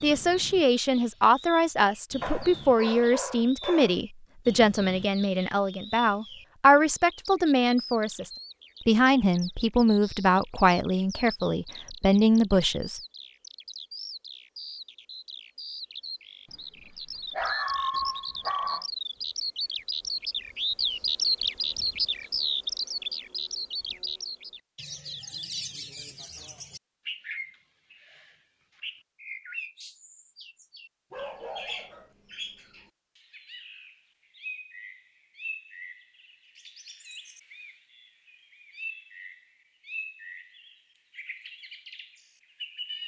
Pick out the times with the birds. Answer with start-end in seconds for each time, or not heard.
0.0-43.0.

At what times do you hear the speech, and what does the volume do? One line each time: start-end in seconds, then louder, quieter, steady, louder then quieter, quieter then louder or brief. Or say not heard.
0.0-13.0 steady.